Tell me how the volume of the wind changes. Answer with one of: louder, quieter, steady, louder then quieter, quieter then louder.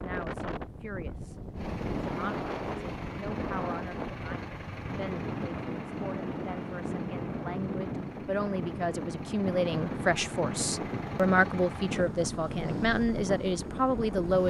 steady.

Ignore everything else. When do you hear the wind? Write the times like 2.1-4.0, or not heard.
0.0-14.4.